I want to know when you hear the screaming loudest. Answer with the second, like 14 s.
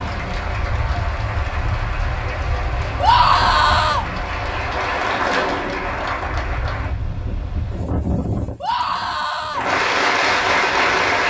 3 s.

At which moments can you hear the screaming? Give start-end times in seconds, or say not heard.
3.0-4.0, 8.6-9.7.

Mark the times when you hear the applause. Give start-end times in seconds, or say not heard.
0.0-7.0, 9.5-11.2.